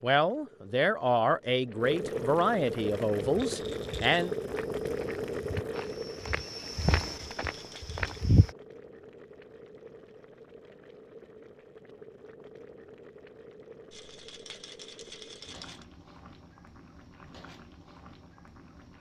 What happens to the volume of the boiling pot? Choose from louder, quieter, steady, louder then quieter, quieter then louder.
quieter.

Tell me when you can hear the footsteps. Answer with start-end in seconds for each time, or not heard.
3.0-8.5.